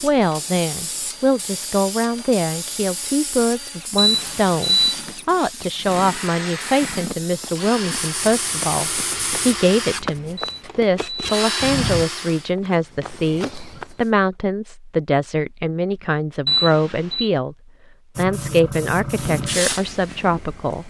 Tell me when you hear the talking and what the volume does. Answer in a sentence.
You can hear the talking from 0.0 to 17.6 s, at a steady volume; and briefly from 18.1 to 20.8 s.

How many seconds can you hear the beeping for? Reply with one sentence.
The beeping can be heard for 3 seconds in total.